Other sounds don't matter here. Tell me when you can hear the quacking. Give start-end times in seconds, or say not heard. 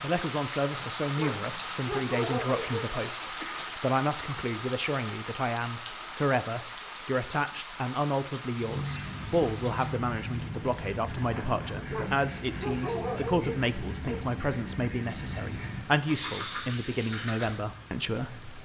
8.6-17.6.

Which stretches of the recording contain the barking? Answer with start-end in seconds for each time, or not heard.
1.1-2.9, 11.8-14.2.